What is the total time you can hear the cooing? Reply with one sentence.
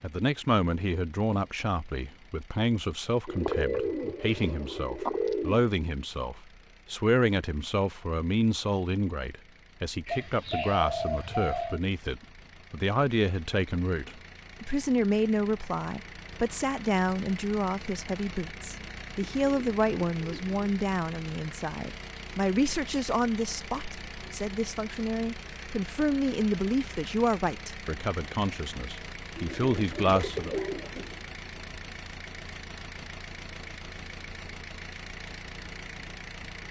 You can hear the cooing for 7 seconds altogether.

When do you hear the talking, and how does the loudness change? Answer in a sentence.
The talking can be heard from 0.0 to 30.6 s, at a steady volume.